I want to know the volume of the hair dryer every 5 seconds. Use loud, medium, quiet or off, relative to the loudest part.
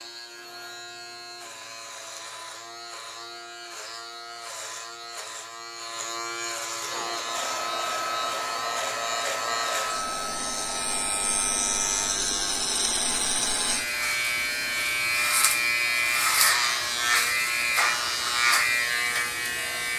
off, loud, loud, off.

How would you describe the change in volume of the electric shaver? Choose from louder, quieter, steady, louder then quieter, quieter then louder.
louder.